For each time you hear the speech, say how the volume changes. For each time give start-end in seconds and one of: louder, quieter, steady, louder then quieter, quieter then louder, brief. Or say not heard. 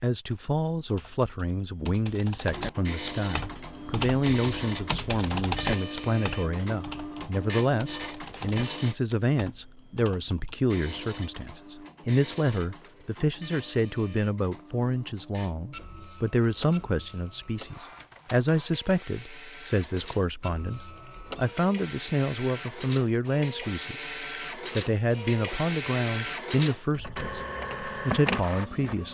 0.0-29.0 steady.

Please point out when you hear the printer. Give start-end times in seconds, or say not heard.
2.4-8.9, 10.7-29.0.